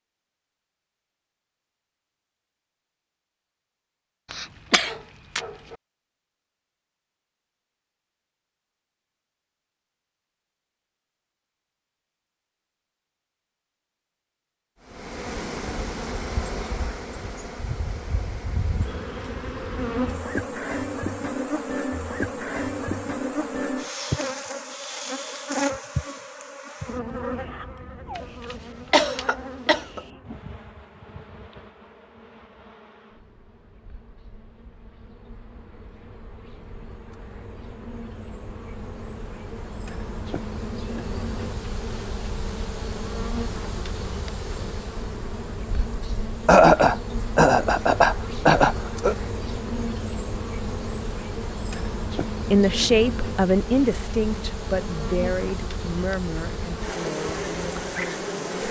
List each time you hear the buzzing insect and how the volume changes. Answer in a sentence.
You can hear the buzzing insect from 14.8 to 58.6 s, getting quieter then louder.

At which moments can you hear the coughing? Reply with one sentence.
The coughing can be heard from 4.3 to 5.8 s, from 28.1 to 30.0 s and from 46.5 to 49.1 s.